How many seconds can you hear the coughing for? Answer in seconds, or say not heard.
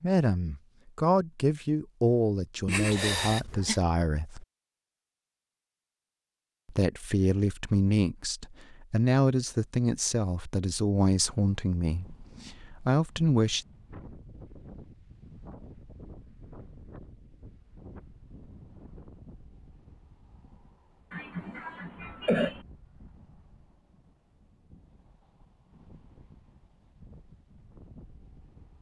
3 s.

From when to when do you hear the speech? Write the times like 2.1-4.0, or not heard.
0.0-4.5, 6.7-13.7.